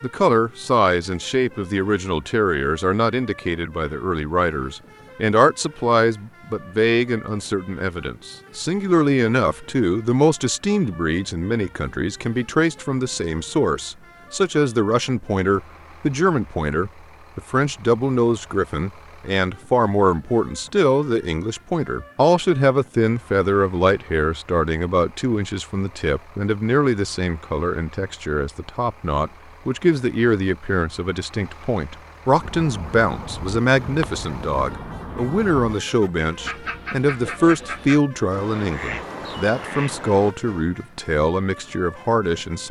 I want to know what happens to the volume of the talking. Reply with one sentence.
The volume of the talking stays about the same.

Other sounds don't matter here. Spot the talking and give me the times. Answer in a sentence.
The talking can be heard from 0.0 to 42.6 s.